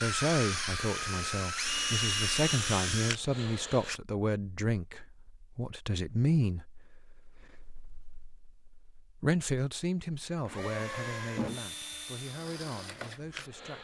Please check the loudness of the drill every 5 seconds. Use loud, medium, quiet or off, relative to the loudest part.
loud, off, medium.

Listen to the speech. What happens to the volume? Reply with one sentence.
The volume of the speech goes down.